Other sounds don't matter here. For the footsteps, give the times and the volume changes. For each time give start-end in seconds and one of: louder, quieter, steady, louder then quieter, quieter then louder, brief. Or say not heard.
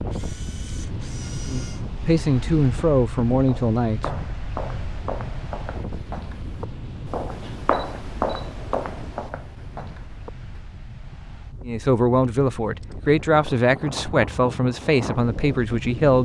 3.4-10.6 louder then quieter.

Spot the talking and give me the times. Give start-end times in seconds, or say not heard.
1.4-4.0, 11.7-16.1.